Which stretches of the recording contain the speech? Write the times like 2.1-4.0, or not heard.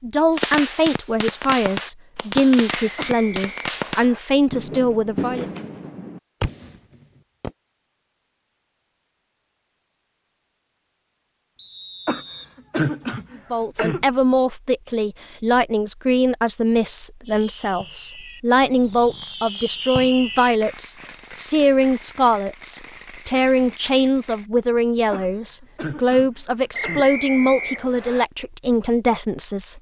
0.0-5.5, 13.5-29.7.